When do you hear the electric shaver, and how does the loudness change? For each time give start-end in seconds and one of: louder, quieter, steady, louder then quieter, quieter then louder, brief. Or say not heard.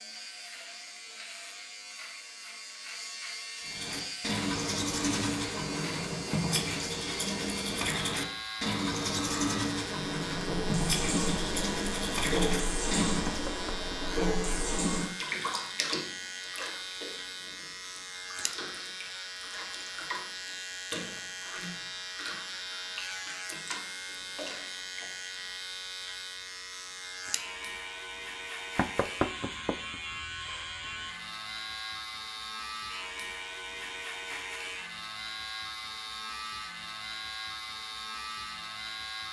0.0-39.2 steady.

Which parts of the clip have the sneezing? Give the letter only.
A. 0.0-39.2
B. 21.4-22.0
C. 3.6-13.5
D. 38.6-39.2
B.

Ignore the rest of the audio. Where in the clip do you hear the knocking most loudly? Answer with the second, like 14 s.
29 s.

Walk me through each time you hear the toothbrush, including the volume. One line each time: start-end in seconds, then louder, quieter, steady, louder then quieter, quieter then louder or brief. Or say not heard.
3.6-13.5 steady.